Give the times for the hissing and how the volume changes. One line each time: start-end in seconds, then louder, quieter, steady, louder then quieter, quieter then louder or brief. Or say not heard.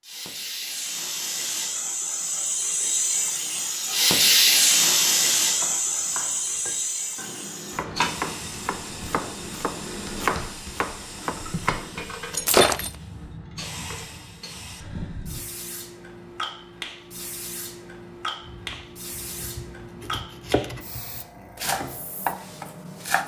0.0-23.2 quieter.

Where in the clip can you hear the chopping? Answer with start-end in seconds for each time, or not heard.
5.5-12.0, 18.4-23.2.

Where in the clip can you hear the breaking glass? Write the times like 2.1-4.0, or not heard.
12.3-12.9.